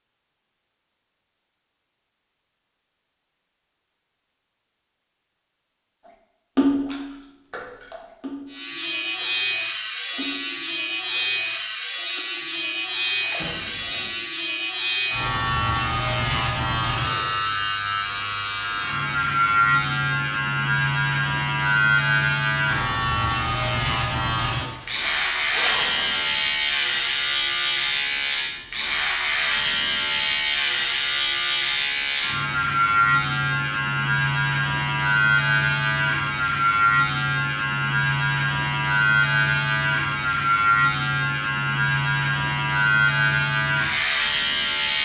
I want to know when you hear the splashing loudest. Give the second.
7 s.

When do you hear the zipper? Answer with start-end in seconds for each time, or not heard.
13.3-14.2, 24.6-26.2.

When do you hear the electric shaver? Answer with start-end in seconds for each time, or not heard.
8.5-44.9.